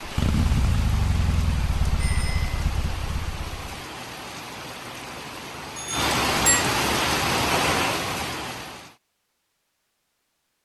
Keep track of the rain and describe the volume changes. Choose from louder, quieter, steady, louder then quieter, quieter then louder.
louder.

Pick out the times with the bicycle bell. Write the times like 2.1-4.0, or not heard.
1.9-2.6, 5.8-6.7.